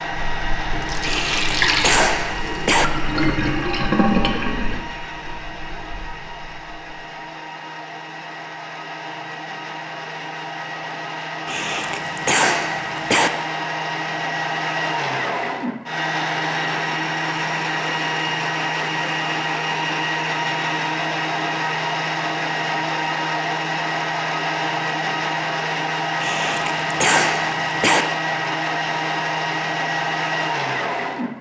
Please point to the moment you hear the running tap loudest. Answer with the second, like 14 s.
4 s.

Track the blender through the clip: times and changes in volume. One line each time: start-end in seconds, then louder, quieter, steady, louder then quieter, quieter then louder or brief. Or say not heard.
0.0-31.3 louder.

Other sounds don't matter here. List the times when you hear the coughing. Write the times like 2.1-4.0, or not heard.
1.0-2.9, 11.4-13.3, 26.2-28.1.